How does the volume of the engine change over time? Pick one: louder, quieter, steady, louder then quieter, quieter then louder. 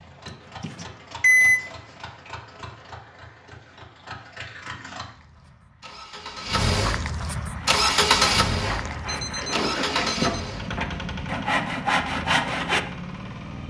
louder then quieter.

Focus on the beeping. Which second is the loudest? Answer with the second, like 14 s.
1 s.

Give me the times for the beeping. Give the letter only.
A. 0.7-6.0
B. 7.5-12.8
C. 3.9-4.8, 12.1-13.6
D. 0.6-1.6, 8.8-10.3
D.